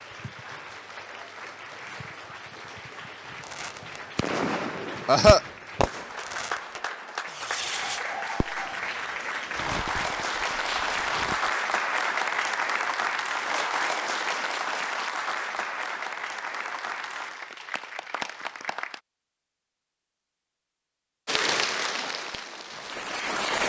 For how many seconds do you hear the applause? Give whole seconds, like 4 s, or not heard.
21 s.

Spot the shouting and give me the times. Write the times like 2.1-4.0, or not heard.
not heard.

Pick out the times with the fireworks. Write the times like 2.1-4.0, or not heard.
3.4-8.8, 9.6-11.5.